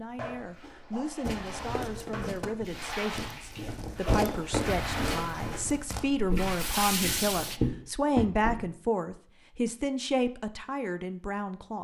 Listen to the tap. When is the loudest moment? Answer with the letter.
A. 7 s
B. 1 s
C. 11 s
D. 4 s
A.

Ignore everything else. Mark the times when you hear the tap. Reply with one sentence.
You can hear the tap from 0.0 to 7.6 s.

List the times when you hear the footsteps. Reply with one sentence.
The footsteps can be heard from 1.2 to 8.8 s.